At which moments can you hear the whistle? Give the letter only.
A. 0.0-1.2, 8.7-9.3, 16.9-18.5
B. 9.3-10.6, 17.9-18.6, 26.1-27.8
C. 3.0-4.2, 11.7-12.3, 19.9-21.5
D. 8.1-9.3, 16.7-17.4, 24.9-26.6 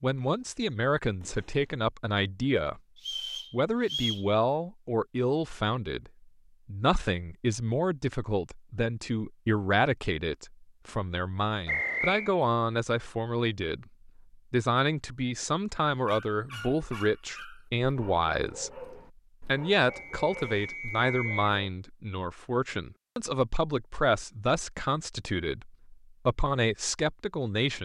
C.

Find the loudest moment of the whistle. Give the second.
12 s.